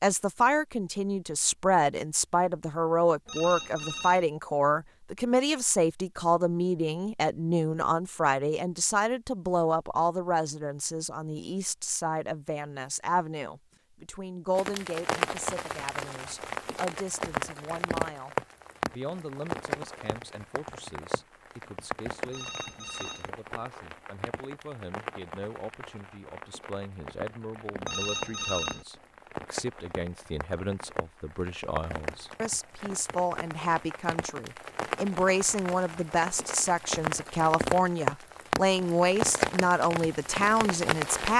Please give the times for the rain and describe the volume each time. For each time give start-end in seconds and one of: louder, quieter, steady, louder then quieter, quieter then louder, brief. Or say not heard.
14.6-41.3 quieter then louder.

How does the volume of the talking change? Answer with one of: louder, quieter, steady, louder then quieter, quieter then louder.
quieter then louder.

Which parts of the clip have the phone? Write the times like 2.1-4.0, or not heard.
3.2-4.2, 22.3-23.3, 27.9-28.9.